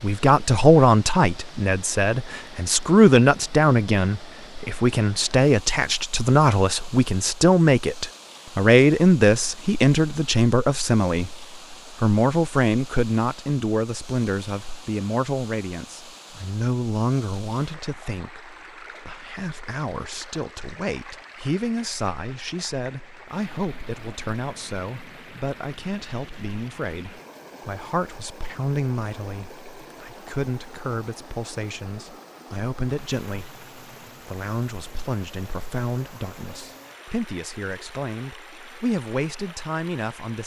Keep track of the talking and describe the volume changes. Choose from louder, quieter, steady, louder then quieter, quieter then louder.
quieter.